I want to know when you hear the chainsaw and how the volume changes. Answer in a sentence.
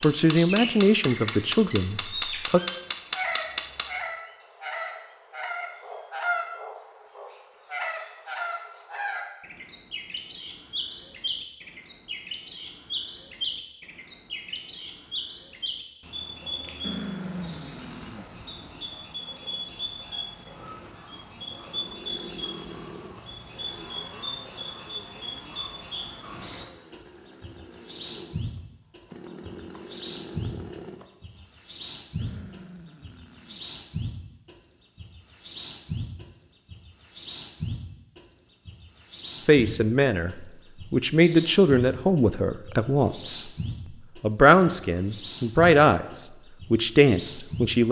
The chainsaw can be heard from 21.6 to 31.6 s, getting quieter then louder.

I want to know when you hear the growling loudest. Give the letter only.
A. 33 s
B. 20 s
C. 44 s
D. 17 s
D.